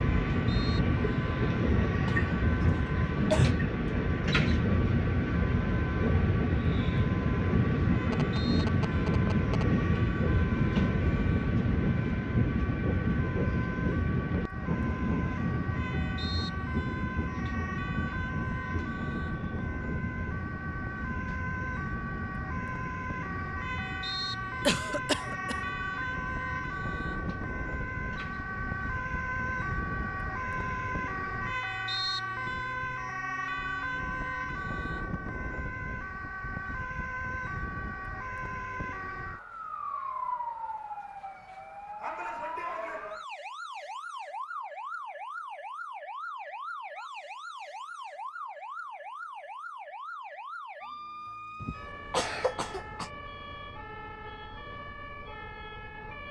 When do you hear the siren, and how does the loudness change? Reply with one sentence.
You can hear the siren from 0.0 to 56.2 s, getting louder then quieter.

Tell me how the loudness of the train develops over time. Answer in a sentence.
The volume of the train goes down.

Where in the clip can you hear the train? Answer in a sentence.
The train can be heard from 0.0 to 31.6 s.